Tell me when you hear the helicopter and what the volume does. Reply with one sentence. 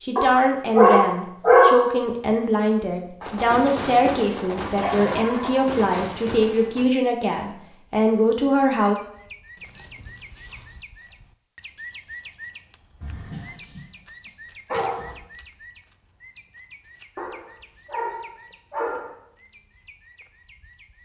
You can't hear the helicopter here.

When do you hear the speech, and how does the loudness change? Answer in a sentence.
You can hear the speech from 0.0 to 8.9 s, at a steady volume.